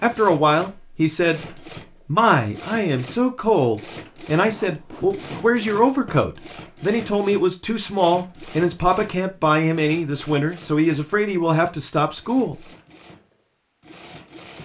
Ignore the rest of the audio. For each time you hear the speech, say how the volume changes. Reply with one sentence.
The speech can be heard from 0.0 to 12.6 s, at a steady volume.